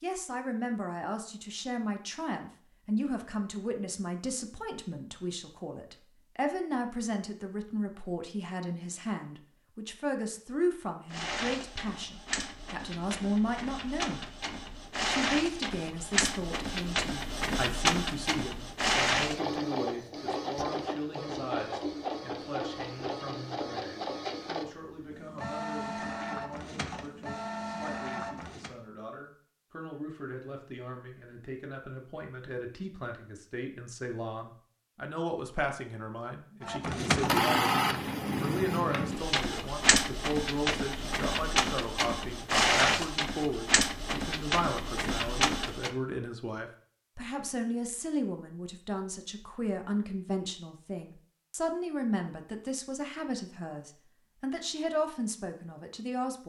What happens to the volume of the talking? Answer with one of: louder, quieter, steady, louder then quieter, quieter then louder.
quieter then louder.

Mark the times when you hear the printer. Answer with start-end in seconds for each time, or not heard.
11.1-28.7, 36.6-46.0.